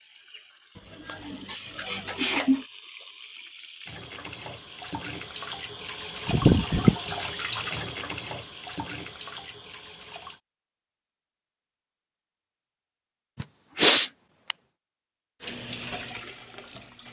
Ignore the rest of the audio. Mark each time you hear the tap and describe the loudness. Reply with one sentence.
The tap can be heard from 0.0 to 10.4 s, getting louder then quieter; and briefly from 15.4 to 17.0 s.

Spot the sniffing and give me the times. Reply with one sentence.
You can hear the sniffing from 0.8 to 2.6 s, from 6.2 to 7.0 s and from 13.4 to 14.6 s.